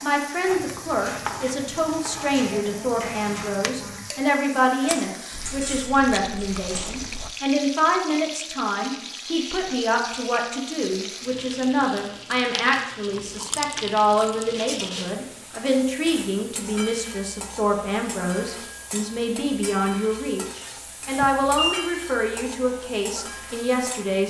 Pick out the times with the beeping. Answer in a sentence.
The beeping can be heard from 21.2 to 21.9 s.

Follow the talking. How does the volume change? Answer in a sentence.
The volume of the talking stays about the same.